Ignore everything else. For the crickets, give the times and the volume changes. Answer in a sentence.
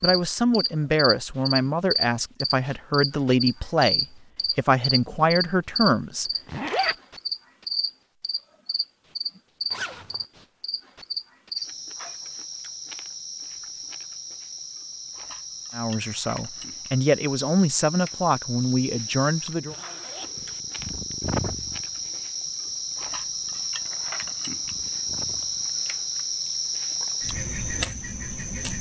The crickets can be heard from 0.0 to 28.7 s, getting quieter then louder.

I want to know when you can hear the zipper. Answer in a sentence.
You can hear the zipper from 6.5 to 7.0 s, from 9.7 to 10.2 s and from 19.6 to 20.6 s.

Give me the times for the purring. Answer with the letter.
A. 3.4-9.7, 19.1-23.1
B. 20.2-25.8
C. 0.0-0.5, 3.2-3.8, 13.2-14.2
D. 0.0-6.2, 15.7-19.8
B.